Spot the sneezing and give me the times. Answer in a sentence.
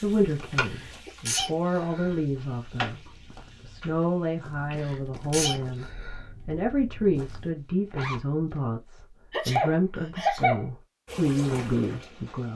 You can hear the sneezing from 0.6 to 2.1 s, from 4.7 to 6.2 s and from 9.3 to 10.7 s.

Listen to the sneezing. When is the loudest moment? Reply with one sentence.
The loudest moment of the sneezing is at 10 seconds.